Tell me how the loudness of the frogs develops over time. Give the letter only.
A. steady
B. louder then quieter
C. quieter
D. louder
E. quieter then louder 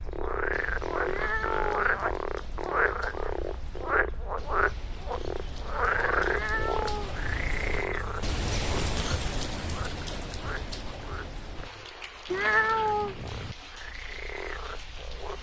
C.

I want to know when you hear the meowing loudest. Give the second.
13 s.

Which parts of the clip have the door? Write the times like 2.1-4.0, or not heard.
not heard.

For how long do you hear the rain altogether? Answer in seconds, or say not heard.
15 s.